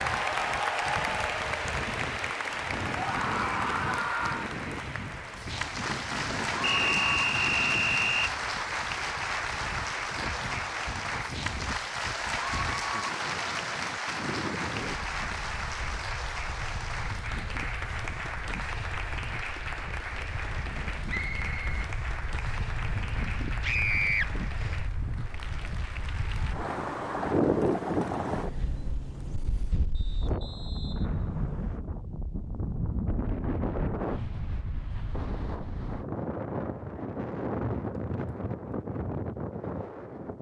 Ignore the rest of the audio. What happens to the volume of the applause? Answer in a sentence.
The loudness of the applause goes down.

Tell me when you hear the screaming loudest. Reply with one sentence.
The volume of the screaming peaks at 24 seconds.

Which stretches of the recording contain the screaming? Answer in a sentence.
The screaming can be heard from 3.0 to 4.5 s and from 23.6 to 24.3 s.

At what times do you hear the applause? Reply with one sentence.
You can hear the applause from 0.0 to 26.6 s.